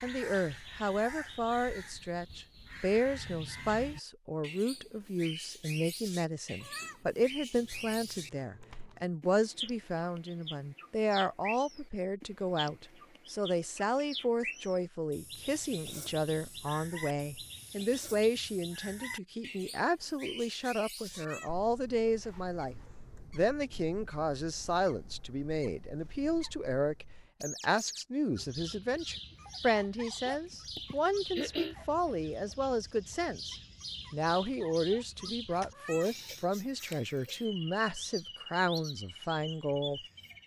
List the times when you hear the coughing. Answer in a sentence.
You can hear the coughing from 30.8 to 31.8 s.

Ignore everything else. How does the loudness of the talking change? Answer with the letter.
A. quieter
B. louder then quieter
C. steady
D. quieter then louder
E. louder
C.